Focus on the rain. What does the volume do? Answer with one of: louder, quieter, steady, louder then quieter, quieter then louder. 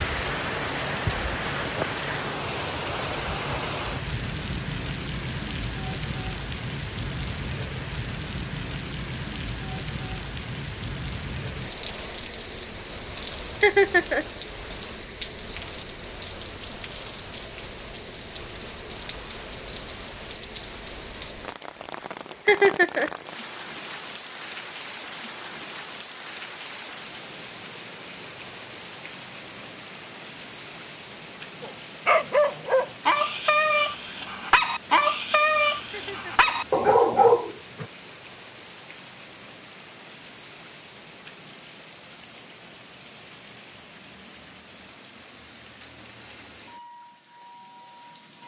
quieter.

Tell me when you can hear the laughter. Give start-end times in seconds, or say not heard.
13.6-14.2, 22.4-23.1, 35.9-36.5.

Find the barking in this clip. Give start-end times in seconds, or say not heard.
31.6-37.9.